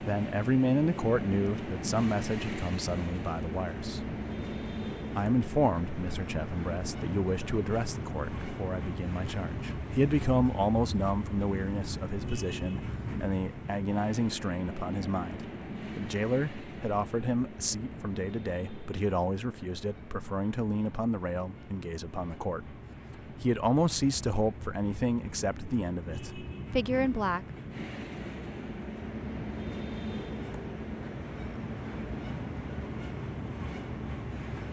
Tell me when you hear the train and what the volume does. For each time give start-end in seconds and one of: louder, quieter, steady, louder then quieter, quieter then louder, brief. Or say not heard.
0.0-34.6 quieter then louder.